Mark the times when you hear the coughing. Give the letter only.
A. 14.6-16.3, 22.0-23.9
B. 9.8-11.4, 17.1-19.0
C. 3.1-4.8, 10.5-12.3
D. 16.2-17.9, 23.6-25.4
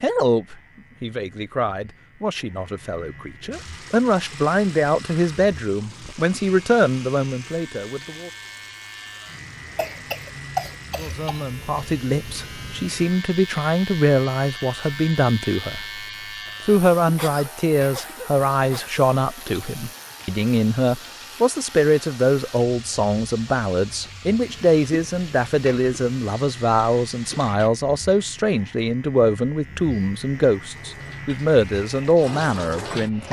B.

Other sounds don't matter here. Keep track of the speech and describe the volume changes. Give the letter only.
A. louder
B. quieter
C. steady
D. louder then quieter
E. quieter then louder
C.